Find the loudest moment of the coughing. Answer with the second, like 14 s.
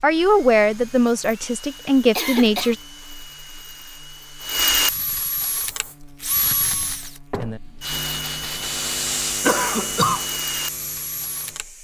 10 s.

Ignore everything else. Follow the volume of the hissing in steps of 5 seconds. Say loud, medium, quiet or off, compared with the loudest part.
off, loud, medium.